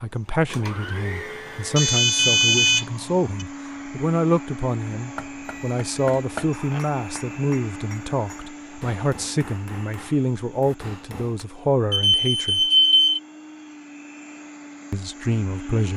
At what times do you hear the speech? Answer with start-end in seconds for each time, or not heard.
0.0-12.7, 14.9-15.9.